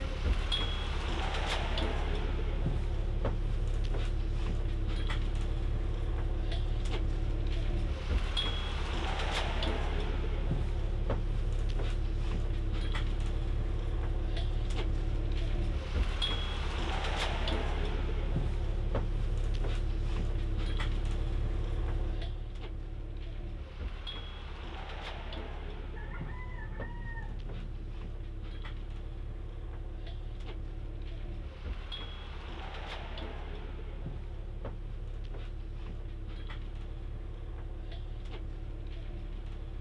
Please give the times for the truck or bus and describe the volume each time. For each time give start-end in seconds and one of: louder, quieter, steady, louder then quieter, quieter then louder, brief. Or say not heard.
0.0-39.7 quieter.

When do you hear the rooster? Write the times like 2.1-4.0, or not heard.
25.9-27.9.